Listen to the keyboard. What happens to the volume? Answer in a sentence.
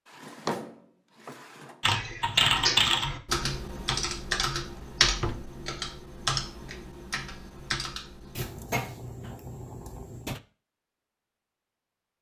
The volume of the keyboard goes down.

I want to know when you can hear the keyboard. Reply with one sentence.
You can hear the keyboard from 1.8 to 8.7 s.